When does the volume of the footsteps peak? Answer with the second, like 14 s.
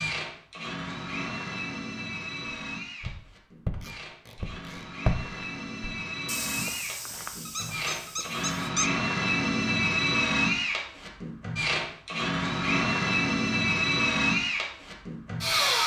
5 s.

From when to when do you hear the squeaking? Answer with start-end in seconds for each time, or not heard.
7.5-8.9.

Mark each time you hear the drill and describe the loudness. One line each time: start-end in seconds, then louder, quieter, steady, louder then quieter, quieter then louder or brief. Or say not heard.
0.0-15.8 louder.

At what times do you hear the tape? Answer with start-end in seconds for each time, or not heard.
3.8-4.8.